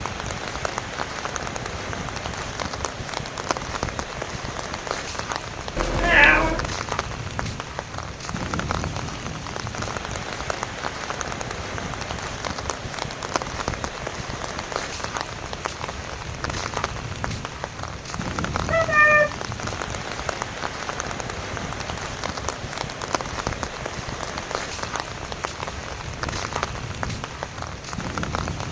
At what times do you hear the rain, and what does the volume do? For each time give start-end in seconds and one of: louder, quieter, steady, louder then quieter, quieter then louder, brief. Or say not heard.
0.0-28.6 steady.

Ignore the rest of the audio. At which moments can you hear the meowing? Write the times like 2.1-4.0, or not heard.
5.8-6.7, 18.7-19.4.